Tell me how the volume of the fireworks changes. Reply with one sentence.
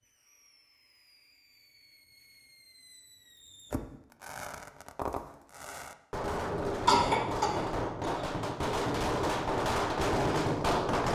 The loudness of the fireworks goes up.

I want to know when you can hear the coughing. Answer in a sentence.
The coughing can be heard from 6.8 to 8.2 s.